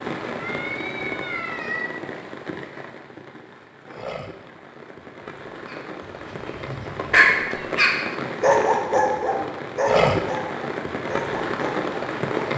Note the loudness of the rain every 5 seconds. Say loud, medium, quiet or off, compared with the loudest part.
medium, medium, loud.